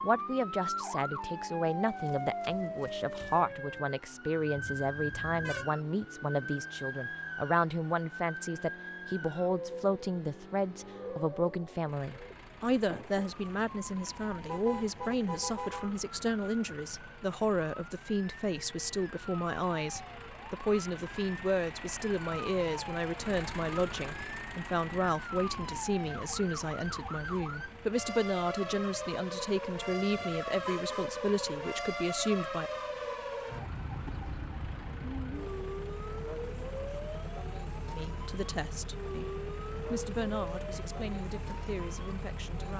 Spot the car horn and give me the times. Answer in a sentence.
The car horn can be heard from 4.5 to 5.7 s, from 14.4 to 15.9 s and from 30.1 to 31.1 s.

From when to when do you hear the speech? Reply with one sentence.
The speech can be heard from 0.0 to 32.7 s and from 37.9 to 42.7 s.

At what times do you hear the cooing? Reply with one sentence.
You can't hear the cooing here.